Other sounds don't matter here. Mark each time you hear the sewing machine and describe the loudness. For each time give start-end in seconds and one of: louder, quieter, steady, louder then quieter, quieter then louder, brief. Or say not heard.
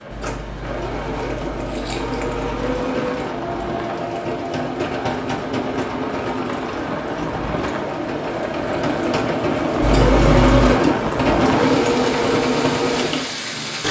0.0-13.8 louder.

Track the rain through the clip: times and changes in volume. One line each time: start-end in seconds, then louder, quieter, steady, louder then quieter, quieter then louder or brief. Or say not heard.
0.0-13.8 louder.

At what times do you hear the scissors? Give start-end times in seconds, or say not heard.
0.1-2.8, 9.8-10.8.